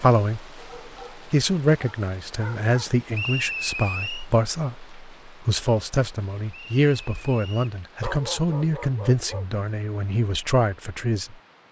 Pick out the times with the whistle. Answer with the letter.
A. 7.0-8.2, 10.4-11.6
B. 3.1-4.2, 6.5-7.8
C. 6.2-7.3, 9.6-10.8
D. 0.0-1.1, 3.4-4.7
B.